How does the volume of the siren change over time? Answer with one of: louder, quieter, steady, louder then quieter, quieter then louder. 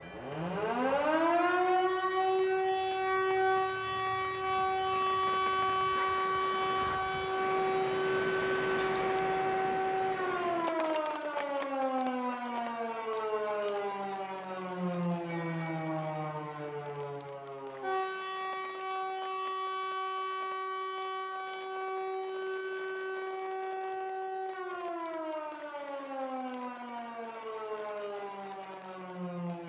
quieter.